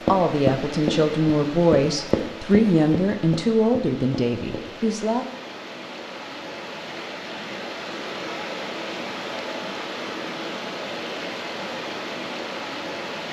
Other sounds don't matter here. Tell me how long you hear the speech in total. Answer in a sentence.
You can hear the speech for 5 seconds altogether.